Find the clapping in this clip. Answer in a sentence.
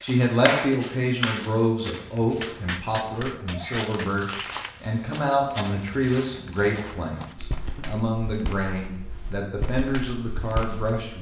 You can hear the clapping from 0.0 to 4.7 s.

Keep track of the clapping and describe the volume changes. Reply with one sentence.
The loudness of the clapping goes down.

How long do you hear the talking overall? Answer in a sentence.
The talking can be heard for 11 seconds in total.